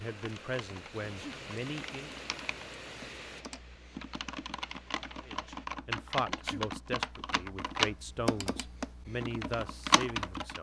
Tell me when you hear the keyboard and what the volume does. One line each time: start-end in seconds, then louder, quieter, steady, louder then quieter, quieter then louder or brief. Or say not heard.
0.0-10.5 louder.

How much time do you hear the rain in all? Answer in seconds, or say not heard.
6 s.